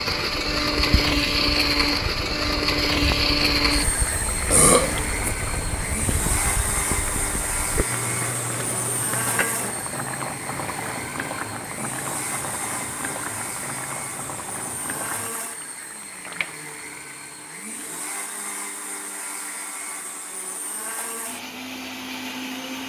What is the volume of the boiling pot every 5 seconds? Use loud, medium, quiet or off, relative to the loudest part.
loud, loud, loud, medium, off.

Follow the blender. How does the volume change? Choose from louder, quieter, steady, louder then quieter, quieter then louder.
quieter.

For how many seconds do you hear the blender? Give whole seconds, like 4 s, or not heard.
23 s.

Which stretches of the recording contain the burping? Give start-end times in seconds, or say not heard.
4.5-5.3.